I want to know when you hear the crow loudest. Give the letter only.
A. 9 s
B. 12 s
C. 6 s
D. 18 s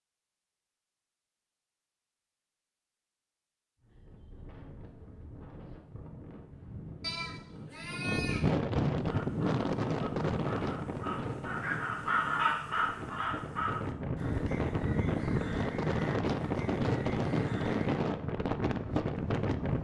B.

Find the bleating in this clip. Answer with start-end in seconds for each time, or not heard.
7.0-8.5.